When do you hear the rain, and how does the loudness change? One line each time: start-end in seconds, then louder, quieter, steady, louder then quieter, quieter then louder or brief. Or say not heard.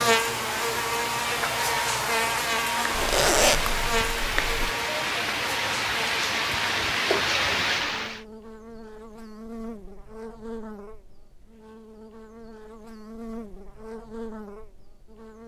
0.0-8.2 louder.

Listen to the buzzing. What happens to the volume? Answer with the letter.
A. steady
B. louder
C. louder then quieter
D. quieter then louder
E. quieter
E.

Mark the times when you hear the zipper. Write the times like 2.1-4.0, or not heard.
2.9-4.7.